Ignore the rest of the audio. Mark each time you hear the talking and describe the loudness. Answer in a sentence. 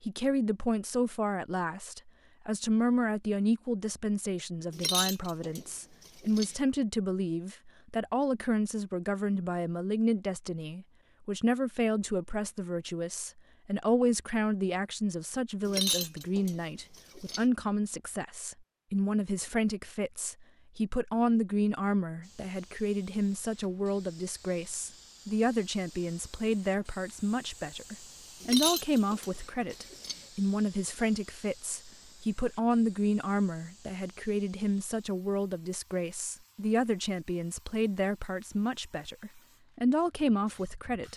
The talking can be heard from 0.0 to 41.1 s, at a steady volume.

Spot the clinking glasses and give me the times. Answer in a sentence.
The clinking glasses can be heard from 4.7 to 6.5 s, from 15.7 to 17.4 s and from 28.4 to 30.2 s.